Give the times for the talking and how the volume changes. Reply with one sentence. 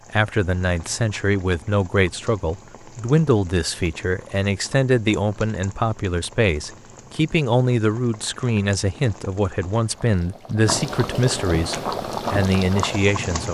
The talking can be heard from 0.1 to 13.4 s, at a steady volume.